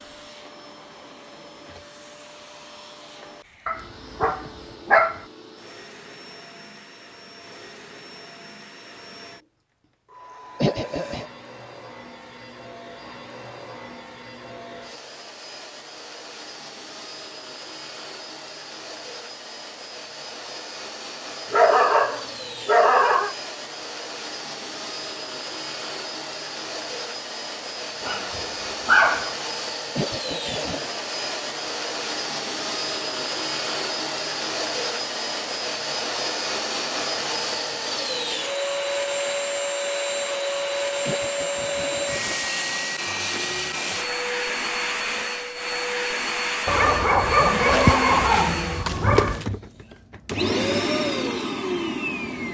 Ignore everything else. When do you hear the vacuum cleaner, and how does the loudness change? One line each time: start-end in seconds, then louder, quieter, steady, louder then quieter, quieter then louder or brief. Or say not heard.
0.0-52.4 louder.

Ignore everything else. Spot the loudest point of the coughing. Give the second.
11 s.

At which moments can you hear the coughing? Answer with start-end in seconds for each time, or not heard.
10.6-11.2, 29.9-30.9, 41.0-42.5.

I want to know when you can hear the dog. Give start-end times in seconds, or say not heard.
3.6-5.2, 21.5-23.4, 28.0-29.3, 46.6-49.5.